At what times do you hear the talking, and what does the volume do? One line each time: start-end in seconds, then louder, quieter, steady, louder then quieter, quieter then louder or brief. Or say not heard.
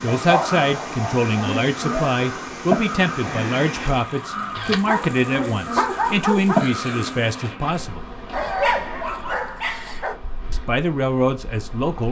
0.0-8.0 steady
10.5-12.0 brief.